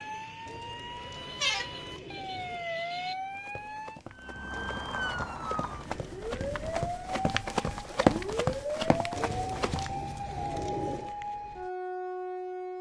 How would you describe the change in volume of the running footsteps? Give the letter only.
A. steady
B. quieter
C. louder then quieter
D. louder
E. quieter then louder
C.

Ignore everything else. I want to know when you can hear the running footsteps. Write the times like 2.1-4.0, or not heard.
3.3-9.9.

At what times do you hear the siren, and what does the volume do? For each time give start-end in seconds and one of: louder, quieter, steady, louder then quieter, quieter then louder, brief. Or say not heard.
0.0-12.7 steady.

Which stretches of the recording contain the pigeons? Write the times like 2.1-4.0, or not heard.
0.5-2.7, 4.5-6.2, 9.2-11.2.